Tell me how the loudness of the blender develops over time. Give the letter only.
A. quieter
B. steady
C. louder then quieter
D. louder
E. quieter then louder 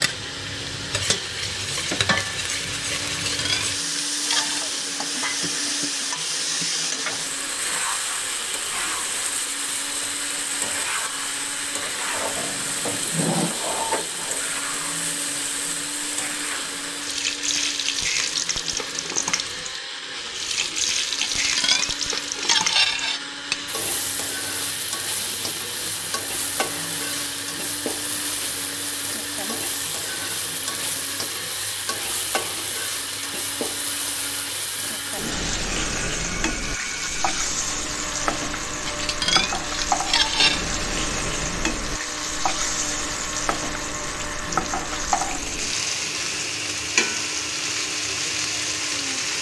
B.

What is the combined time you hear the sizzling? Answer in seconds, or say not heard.
49 s.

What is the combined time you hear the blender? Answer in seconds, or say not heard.
49 s.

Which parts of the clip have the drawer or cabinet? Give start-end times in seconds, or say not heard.
12.3-13.6.